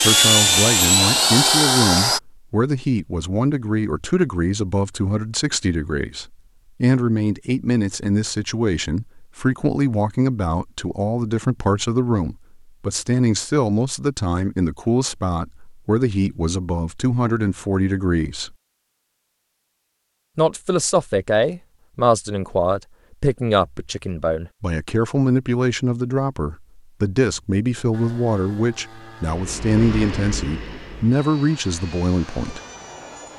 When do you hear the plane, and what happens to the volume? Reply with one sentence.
You can hear the plane briefly from 0.0 to 2.2 s; and from 27.9 to 33.3 s, getting louder then quieter.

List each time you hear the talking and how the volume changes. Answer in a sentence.
You can hear the talking from 0.0 to 18.6 s, at a steady volume; and from 20.4 to 32.6 s, at a steady volume.